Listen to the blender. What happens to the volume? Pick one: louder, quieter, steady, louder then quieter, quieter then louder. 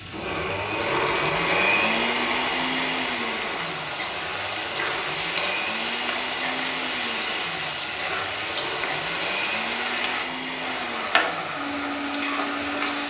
quieter.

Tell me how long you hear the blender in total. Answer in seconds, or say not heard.
13 s.